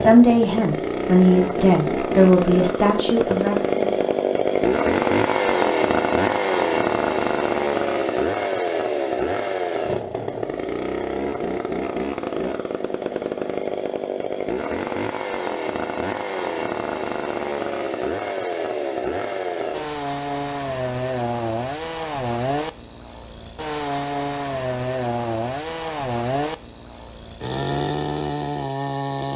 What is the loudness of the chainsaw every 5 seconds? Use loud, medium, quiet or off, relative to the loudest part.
loud, loud, medium, medium, medium, medium.